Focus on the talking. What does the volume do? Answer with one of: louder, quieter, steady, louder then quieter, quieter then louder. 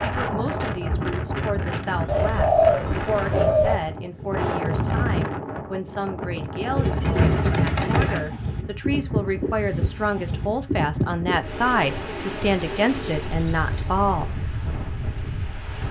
louder.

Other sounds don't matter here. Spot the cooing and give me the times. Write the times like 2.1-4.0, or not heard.
2.0-3.8, 6.8-8.3, 11.4-13.9.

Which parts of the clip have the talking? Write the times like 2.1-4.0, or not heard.
0.0-14.3.